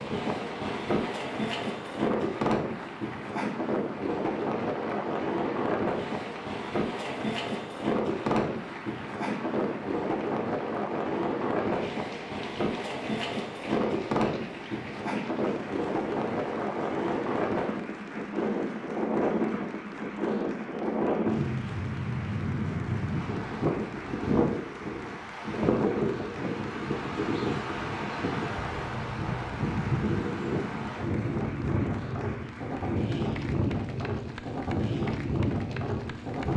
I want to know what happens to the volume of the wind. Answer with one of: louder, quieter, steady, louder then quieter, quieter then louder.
steady.